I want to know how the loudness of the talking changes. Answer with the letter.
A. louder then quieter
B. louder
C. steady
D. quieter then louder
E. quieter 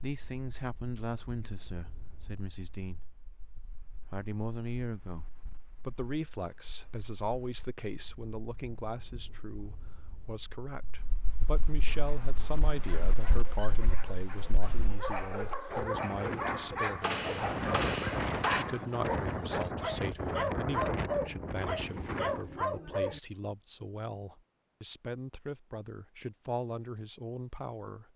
C.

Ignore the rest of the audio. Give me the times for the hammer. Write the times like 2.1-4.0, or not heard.
17.0-18.6.